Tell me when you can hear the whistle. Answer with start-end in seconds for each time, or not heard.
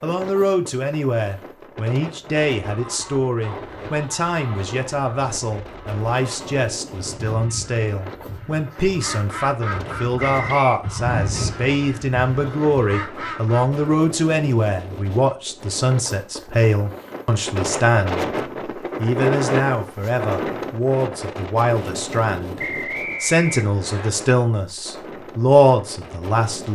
10.2-10.8, 22.6-24.1.